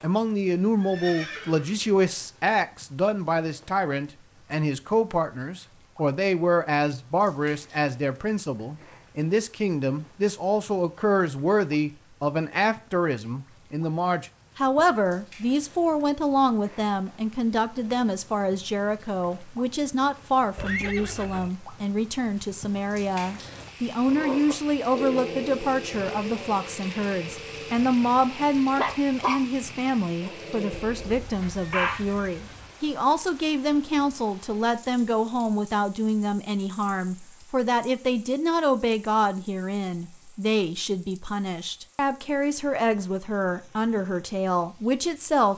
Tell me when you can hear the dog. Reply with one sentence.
You can hear the dog from 24.1 to 29.4 s and from 30.2 to 32.0 s.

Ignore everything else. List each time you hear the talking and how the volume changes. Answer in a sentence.
You can hear the talking from 0.0 to 45.5 s, at a steady volume.